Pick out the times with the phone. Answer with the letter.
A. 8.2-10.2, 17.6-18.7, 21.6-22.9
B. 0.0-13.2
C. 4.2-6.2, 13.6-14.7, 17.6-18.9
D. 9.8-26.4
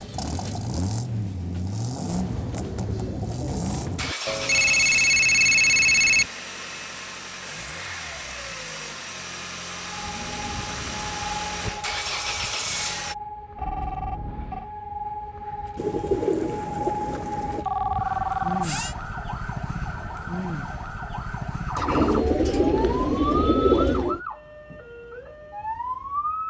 C.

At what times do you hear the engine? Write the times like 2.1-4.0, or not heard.
0.0-13.2.